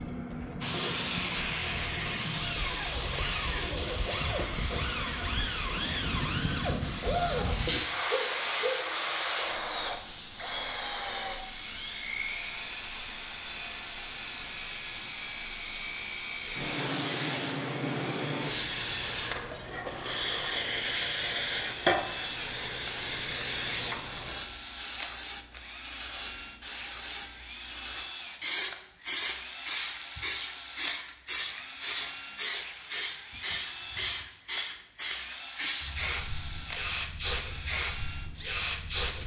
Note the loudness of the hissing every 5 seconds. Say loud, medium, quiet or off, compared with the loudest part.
loud, loud, medium, loud, loud, loud, loud, loud.